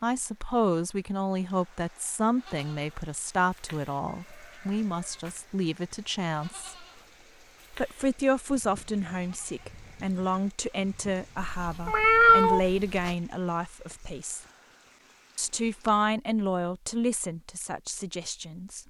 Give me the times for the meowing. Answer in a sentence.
You can hear the meowing from 11.3 to 13.2 s.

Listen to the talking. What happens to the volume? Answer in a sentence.
The loudness of the talking stays about the same.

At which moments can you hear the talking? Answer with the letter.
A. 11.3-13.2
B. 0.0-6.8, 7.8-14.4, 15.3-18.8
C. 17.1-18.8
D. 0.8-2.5
B.